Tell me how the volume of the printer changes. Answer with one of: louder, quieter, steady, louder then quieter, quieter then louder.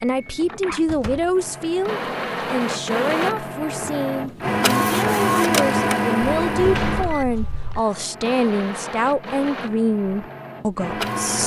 louder then quieter.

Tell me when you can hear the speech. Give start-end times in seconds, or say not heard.
0.0-11.4.